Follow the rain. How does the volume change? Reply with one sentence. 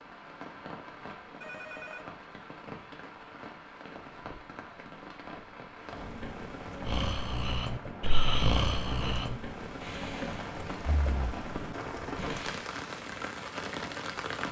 The volume of the rain goes up.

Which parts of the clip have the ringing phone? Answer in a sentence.
The ringing phone can be heard from 1.4 to 2.1 s.